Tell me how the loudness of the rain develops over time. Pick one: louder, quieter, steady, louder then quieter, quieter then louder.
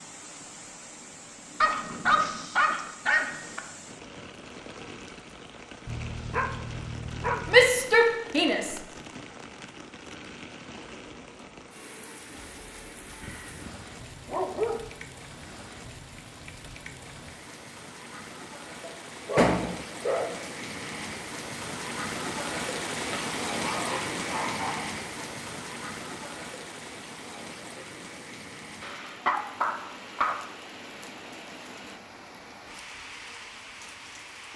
louder then quieter.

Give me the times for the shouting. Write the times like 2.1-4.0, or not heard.
7.5-8.8.